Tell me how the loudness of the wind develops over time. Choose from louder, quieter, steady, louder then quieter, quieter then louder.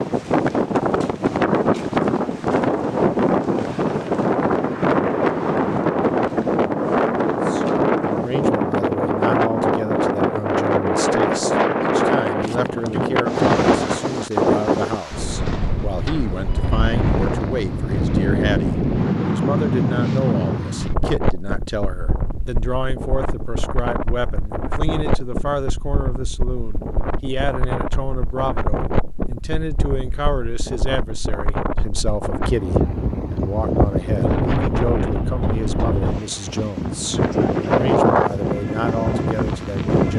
quieter then louder.